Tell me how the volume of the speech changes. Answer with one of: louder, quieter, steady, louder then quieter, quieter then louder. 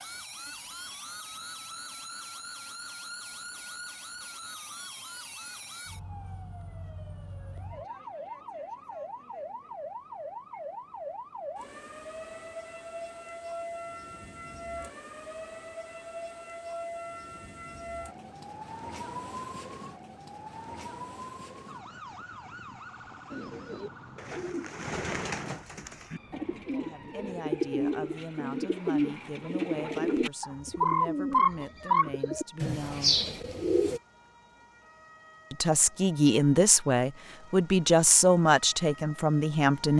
louder.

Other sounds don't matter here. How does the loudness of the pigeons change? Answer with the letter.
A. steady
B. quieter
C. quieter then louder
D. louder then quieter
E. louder
E.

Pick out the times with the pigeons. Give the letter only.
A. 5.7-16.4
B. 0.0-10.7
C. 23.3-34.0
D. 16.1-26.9
C.